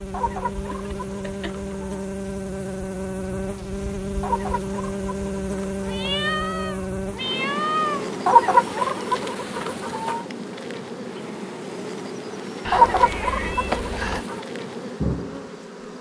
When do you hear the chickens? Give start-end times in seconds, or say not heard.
0.1-2.0, 4.2-6.2, 8.2-10.2, 12.7-14.4.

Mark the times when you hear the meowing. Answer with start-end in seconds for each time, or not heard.
0.7-1.9, 5.8-8.2, 12.7-14.2.